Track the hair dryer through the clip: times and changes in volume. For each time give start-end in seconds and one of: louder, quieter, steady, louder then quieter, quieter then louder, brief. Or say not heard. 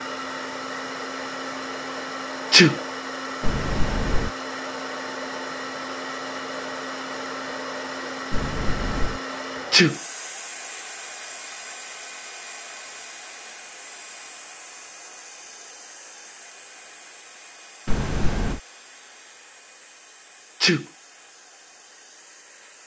0.0-22.8 quieter.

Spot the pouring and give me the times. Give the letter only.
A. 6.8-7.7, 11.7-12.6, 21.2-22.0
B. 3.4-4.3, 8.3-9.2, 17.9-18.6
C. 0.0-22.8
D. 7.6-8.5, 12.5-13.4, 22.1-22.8
B.